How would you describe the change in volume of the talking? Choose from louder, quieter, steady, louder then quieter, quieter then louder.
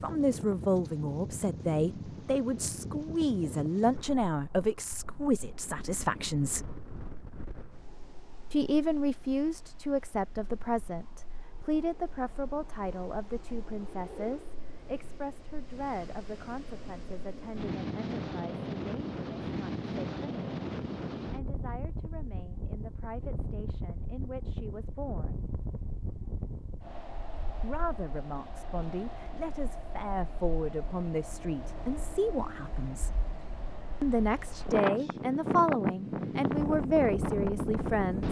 quieter then louder.